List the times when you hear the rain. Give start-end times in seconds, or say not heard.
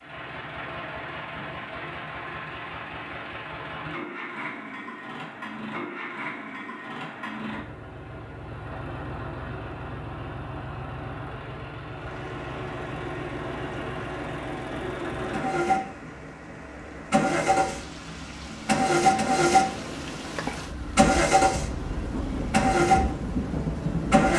11.9-24.3.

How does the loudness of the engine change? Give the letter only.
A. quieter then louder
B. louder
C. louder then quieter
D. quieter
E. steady
B.